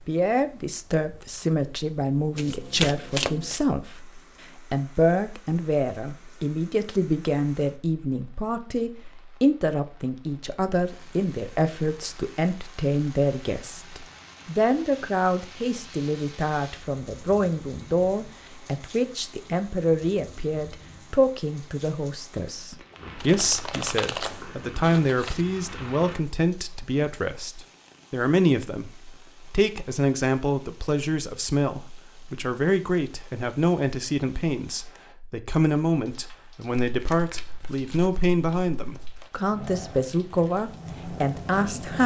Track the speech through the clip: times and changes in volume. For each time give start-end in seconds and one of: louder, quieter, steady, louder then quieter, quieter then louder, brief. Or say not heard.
0.1-42.0 steady.